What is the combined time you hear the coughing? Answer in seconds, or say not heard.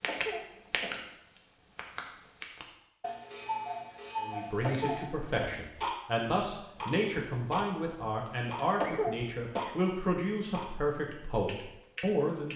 3 s.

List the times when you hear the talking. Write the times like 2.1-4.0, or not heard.
4.2-12.5.